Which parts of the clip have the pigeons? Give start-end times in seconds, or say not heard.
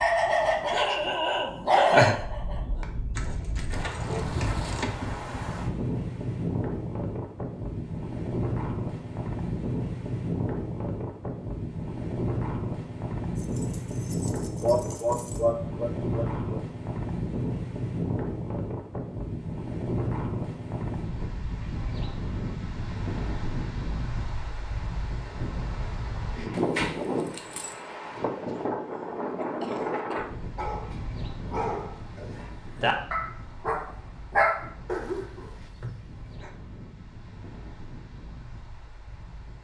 not heard.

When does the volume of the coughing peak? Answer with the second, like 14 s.
15 s.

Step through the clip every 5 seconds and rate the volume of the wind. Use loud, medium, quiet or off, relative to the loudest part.
medium, loud, loud, loud, loud, loud, medium, quiet.